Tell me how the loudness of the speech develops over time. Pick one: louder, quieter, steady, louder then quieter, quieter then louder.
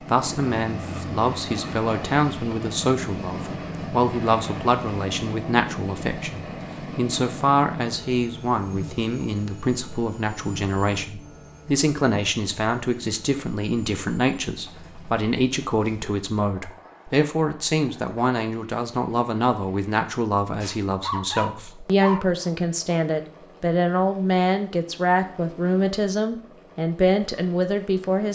steady.